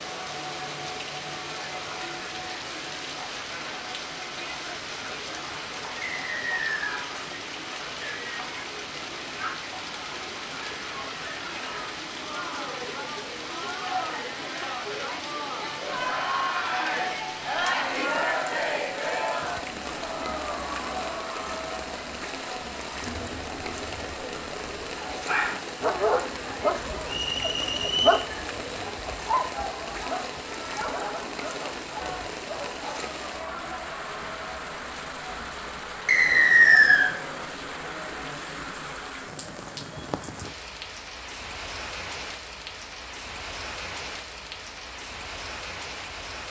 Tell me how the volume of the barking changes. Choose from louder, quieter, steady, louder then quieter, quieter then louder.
quieter.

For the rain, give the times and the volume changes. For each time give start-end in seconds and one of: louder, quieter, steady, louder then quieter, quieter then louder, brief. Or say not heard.
0.0-46.4 steady.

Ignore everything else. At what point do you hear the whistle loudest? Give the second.
37 s.